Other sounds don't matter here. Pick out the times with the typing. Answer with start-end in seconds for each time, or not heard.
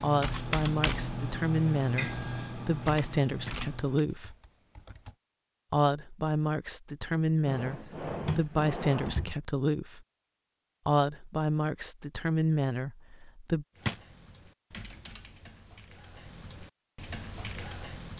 0.0-5.2, 13.8-18.1.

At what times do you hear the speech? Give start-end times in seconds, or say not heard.
0.0-4.3, 5.7-10.0, 10.8-13.7.